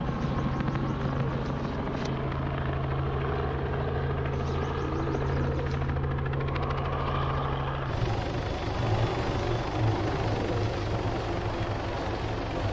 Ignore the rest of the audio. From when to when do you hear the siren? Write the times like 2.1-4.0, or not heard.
not heard.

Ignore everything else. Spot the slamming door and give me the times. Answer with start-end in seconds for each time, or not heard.
not heard.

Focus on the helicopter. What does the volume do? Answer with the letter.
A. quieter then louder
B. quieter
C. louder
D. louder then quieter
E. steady
E.